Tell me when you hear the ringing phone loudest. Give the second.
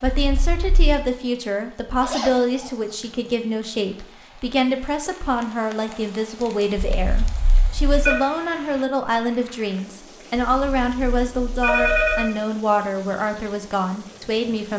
12 s.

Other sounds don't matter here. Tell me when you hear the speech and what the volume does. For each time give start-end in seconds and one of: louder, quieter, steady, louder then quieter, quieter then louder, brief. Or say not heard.
0.0-14.7 steady.